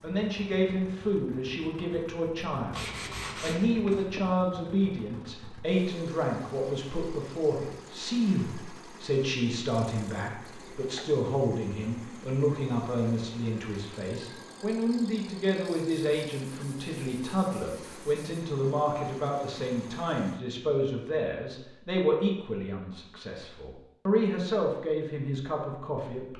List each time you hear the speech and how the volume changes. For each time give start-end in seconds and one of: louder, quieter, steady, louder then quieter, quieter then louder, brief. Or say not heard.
0.0-26.3 steady.